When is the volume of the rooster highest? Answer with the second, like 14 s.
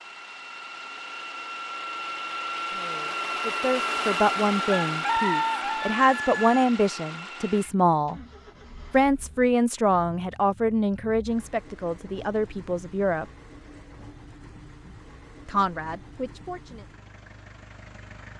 5 s.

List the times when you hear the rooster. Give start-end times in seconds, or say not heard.
4.7-6.7.